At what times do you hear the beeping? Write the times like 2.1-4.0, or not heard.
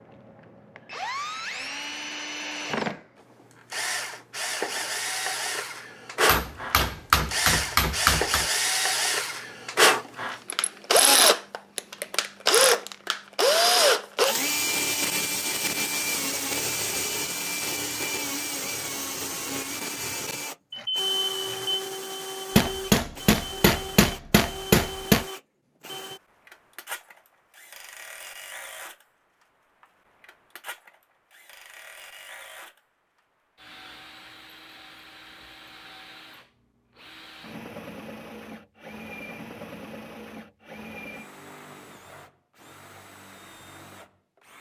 20.7-21.8.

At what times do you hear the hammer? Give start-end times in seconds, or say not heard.
6.2-8.4, 22.6-25.2.